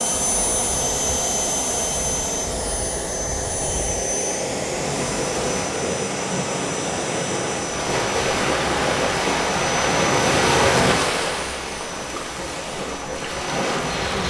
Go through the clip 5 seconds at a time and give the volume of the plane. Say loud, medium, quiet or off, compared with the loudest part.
loud, medium, medium.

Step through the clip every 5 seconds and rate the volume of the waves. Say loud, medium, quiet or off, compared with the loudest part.
quiet, loud, loud.